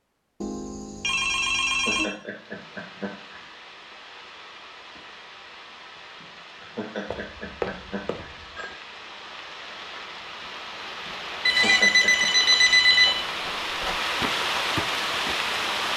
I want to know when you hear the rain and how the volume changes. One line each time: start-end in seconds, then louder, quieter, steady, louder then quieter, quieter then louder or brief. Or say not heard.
2.1-15.9 louder.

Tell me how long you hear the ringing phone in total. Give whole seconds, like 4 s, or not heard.
5 s.